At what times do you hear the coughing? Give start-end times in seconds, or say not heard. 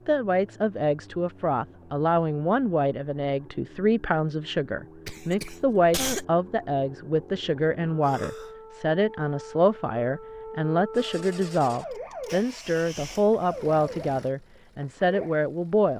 5.0-6.2, 8.1-8.5.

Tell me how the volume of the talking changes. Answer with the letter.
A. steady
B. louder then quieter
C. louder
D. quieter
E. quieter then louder
A.